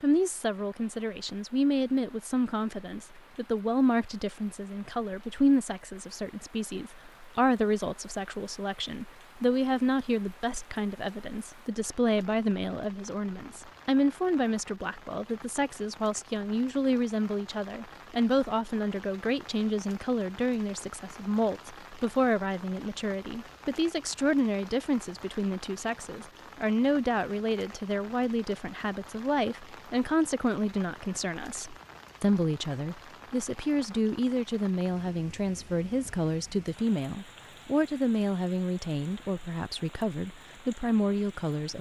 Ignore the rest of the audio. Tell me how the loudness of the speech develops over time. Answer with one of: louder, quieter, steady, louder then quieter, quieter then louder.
steady.